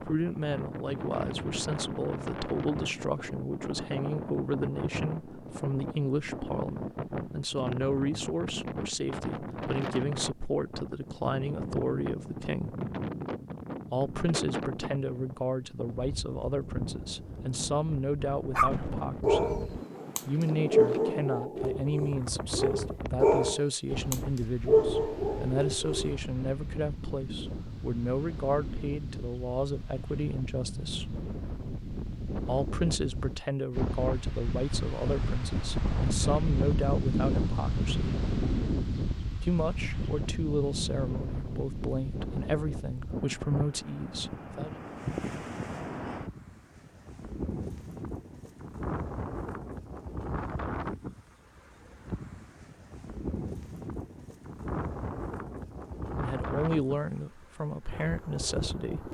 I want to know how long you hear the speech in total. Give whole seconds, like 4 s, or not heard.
43 s.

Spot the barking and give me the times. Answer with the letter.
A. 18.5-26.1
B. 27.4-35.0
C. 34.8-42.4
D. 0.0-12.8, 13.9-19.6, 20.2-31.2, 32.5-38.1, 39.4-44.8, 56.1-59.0
A.